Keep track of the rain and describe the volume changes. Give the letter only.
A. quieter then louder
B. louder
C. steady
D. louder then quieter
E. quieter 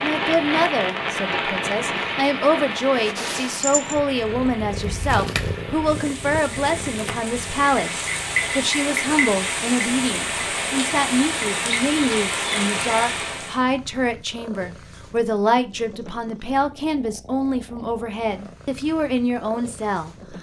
A.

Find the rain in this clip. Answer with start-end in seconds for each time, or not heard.
0.0-13.6.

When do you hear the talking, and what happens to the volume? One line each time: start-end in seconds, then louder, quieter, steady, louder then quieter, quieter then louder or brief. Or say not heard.
0.0-20.3 steady.